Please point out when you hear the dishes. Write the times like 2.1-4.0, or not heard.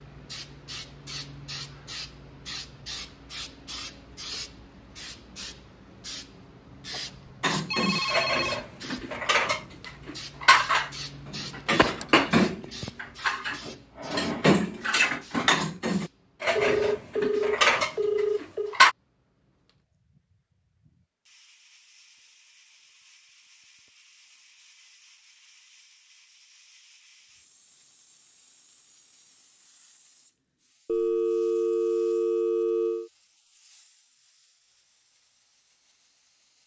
7.4-18.9.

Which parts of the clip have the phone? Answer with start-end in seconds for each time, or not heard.
7.7-8.6, 16.6-18.8, 30.9-33.1.